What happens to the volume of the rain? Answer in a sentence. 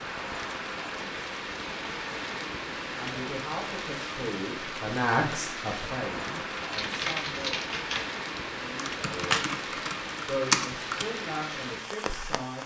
The loudness of the rain stays about the same.